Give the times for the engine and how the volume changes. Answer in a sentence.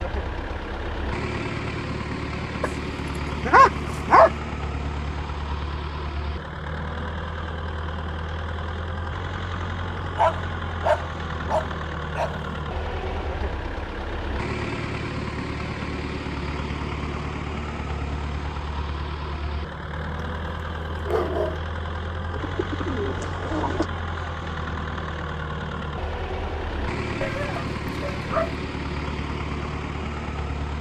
The engine can be heard from 0.0 to 30.7 s, at a steady volume.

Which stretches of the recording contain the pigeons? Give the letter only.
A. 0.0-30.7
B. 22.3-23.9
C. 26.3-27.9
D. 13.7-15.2
B.